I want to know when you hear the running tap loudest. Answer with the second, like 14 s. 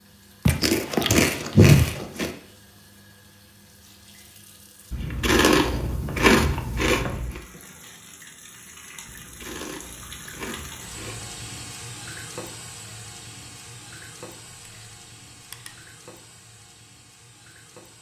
12 s.